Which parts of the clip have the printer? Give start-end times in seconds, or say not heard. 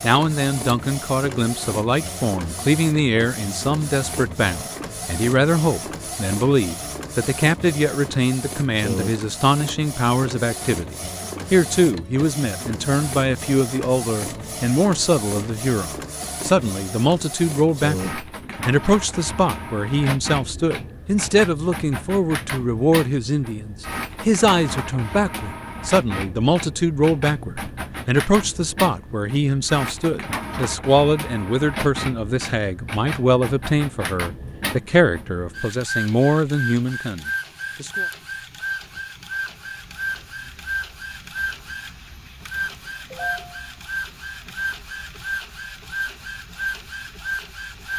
0.0-47.9.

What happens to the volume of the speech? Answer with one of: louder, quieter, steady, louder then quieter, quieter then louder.
steady.